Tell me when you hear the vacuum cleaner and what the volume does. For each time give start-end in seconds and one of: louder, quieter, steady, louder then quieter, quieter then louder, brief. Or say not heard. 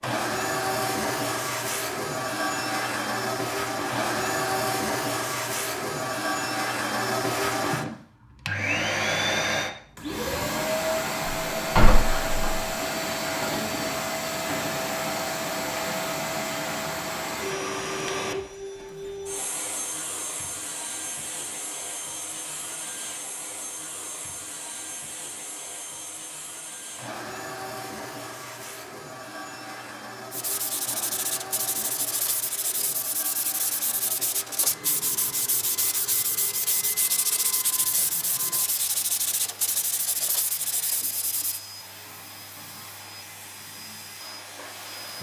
0.0-45.1 quieter.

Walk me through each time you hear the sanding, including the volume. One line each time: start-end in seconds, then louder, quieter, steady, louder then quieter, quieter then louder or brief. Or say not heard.
30.3-41.6 steady.